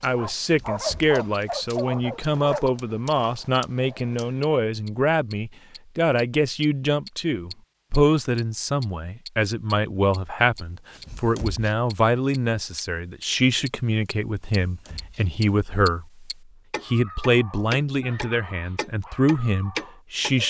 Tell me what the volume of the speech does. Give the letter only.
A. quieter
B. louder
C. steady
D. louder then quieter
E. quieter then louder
C.